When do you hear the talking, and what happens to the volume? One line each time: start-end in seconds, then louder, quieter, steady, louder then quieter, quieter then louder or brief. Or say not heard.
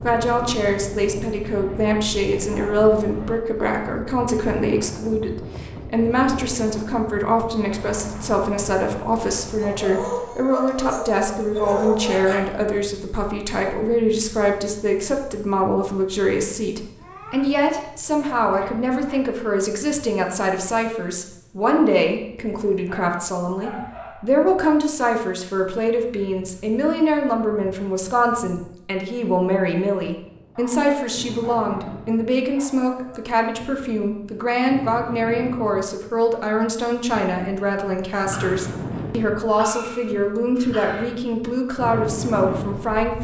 0.0-43.1 steady.